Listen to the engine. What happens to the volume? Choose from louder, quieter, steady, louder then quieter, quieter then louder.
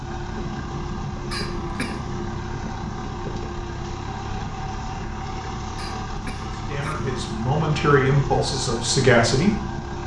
steady.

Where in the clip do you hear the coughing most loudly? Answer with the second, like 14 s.
2 s.